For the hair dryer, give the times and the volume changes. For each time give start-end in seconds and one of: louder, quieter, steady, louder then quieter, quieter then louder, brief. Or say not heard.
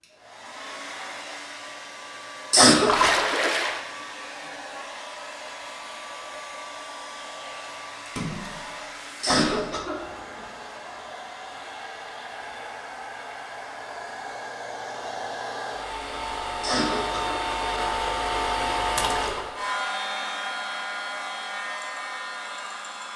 0.0-23.1 louder.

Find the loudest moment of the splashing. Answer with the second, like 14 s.
3 s.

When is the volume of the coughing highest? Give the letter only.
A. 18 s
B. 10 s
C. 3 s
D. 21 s
C.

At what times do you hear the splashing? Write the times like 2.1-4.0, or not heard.
2.9-3.8, 8.1-9.8, 18.9-19.4.